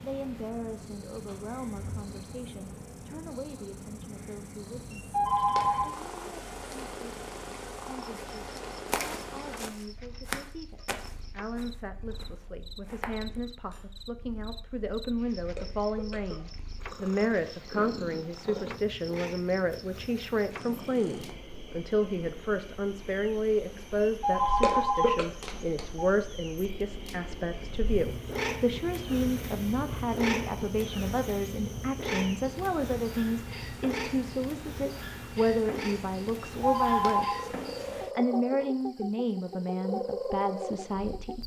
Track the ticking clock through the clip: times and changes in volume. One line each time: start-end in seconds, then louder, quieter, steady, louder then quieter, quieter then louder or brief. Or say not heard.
not heard.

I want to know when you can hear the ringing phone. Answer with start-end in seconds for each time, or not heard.
4.9-5.9, 24.0-26.1, 36.4-37.5.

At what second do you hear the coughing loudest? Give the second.
25 s.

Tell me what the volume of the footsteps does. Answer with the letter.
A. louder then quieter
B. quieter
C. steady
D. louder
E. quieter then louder
A.